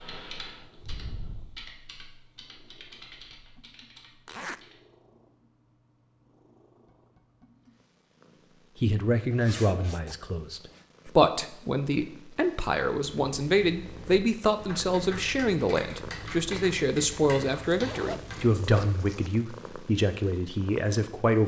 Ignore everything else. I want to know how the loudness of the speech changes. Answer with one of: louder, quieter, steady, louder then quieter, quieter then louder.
steady.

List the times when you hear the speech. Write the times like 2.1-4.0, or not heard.
8.8-21.4.